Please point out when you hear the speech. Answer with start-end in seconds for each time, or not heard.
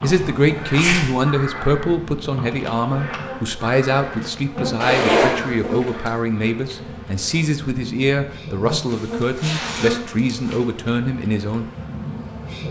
0.0-11.7.